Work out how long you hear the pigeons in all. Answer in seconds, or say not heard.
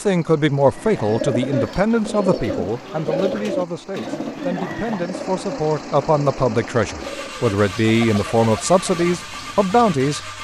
10 s.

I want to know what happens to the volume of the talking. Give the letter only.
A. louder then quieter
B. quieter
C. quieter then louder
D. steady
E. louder
C.